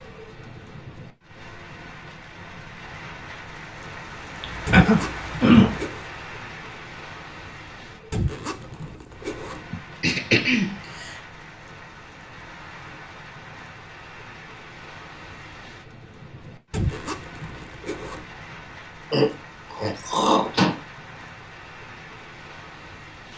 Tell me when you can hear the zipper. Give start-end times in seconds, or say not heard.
4.7-6.1, 8.1-9.7, 16.7-18.2.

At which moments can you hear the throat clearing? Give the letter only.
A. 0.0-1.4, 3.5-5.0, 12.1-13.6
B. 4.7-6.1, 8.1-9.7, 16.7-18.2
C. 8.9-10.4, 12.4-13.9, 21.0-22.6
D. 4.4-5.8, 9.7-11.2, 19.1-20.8
D.